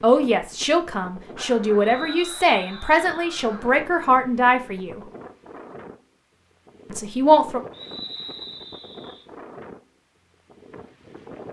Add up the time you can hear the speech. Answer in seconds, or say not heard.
6 s.